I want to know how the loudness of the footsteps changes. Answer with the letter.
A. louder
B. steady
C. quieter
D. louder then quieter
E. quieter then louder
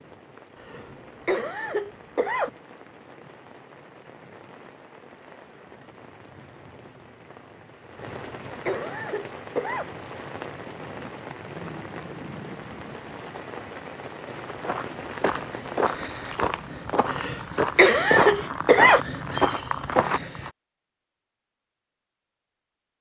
A.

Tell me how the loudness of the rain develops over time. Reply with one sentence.
The loudness of the rain goes up.